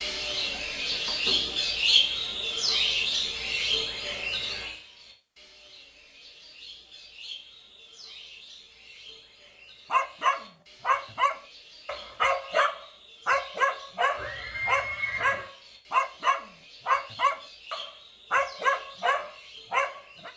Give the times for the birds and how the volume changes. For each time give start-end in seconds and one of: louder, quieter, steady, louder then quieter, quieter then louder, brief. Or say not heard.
0.0-20.3 quieter.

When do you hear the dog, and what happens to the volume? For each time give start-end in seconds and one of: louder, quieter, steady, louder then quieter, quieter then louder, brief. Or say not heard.
9.9-20.3 steady.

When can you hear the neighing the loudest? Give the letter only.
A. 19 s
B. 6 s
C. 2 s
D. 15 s
D.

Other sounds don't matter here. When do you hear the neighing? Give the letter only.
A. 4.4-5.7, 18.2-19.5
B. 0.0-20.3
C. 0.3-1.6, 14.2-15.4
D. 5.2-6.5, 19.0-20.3
C.